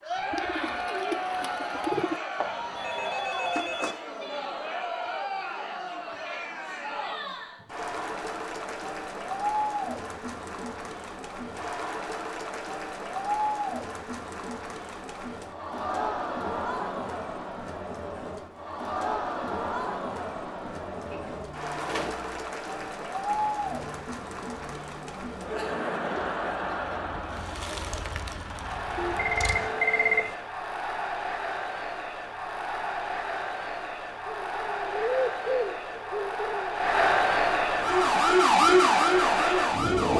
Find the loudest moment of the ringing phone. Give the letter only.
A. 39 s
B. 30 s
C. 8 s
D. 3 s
B.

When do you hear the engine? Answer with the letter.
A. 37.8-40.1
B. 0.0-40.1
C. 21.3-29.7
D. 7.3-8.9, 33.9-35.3
C.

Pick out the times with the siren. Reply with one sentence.
You can hear the siren from 37.8 to 40.1 s.